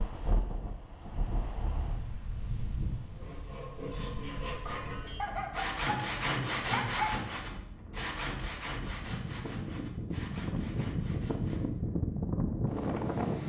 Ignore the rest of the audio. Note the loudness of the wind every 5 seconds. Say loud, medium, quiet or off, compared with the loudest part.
medium, medium, loud.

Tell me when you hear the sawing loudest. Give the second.
6 s.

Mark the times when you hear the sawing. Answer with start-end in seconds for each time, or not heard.
3.1-11.6.